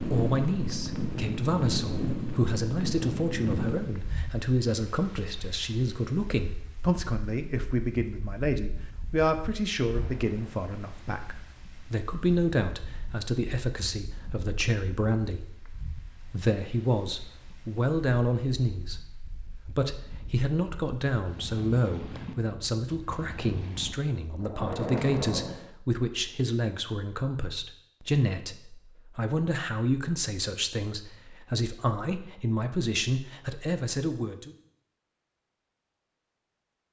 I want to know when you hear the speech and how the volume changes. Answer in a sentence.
You can hear the speech from 0.0 to 34.5 s, at a steady volume.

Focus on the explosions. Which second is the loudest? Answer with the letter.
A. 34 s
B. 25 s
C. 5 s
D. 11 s
B.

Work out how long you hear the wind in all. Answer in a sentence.
You can hear the wind for 24 seconds altogether.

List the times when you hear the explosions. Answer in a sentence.
You can hear the explosions from 9.9 to 11.2 s and from 24.4 to 25.7 s.